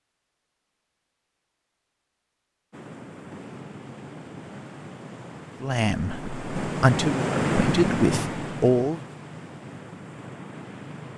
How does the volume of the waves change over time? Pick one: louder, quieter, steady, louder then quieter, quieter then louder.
louder then quieter.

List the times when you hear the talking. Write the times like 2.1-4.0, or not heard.
5.6-9.0.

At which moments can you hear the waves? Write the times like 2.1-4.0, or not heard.
2.7-11.1.